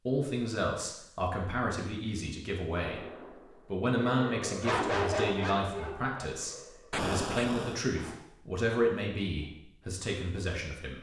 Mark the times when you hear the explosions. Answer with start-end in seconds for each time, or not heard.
6.9-7.8.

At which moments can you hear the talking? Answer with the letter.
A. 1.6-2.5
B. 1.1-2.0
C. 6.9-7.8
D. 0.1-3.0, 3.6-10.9
D.